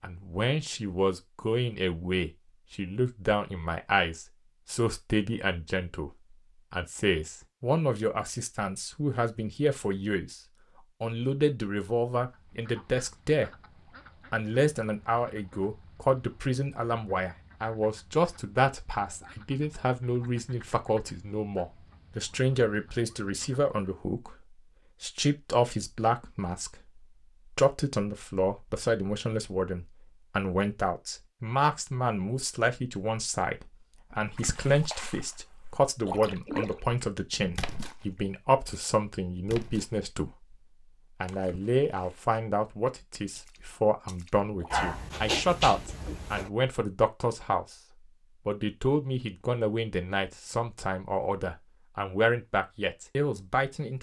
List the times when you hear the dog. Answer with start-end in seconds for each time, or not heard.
44.7-46.5.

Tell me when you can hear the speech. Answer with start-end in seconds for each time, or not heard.
0.0-10.4, 11.0-13.5, 14.3-40.5, 41.2-47.8, 48.5-53.9.